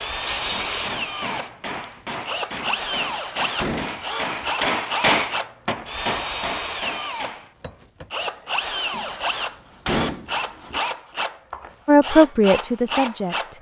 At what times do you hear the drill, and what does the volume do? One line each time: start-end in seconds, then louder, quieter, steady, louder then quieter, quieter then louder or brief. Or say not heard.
0.0-13.5 steady.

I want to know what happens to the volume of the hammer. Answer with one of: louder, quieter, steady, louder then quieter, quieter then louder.
louder then quieter.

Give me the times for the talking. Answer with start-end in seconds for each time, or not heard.
11.8-13.5.